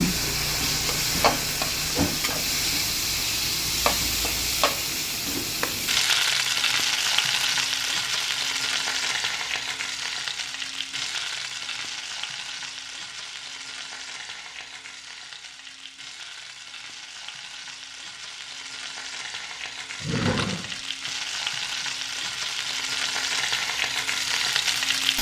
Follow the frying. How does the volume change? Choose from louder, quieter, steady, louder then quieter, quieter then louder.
quieter then louder.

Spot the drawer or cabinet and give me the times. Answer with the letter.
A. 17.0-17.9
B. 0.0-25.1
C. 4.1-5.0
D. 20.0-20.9
D.